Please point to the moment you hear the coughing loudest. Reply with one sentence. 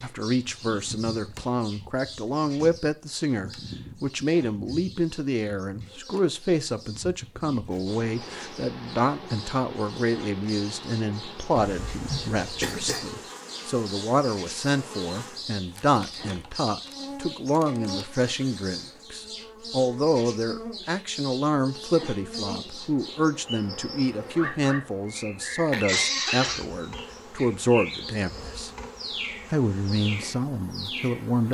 The loudest moment of the coughing is at 26 seconds.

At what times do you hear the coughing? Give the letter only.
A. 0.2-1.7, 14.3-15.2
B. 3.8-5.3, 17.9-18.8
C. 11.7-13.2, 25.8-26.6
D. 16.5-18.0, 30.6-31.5
C.